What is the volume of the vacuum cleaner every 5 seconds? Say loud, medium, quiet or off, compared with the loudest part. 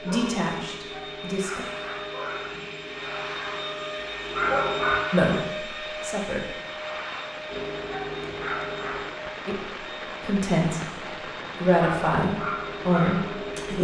loud, loud, medium.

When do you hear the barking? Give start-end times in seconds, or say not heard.
0.0-5.0, 7.5-9.1, 11.8-13.7.